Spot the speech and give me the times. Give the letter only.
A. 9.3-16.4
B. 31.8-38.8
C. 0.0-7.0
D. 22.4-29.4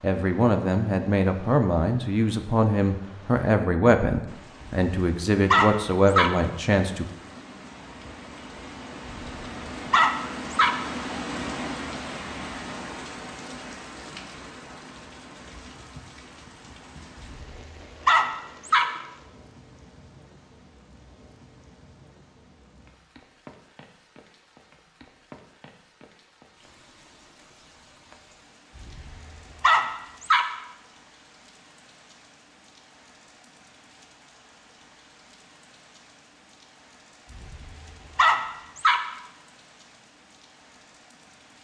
C.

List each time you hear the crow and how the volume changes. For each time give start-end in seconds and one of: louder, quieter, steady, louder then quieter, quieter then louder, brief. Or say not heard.
not heard.